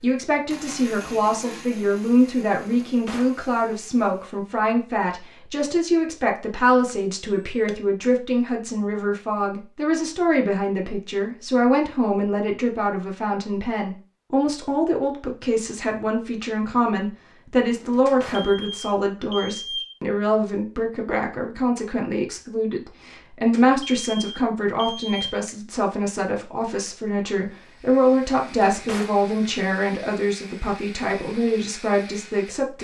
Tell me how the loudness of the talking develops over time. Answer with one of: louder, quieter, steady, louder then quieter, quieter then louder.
steady.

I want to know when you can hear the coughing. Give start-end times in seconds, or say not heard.
not heard.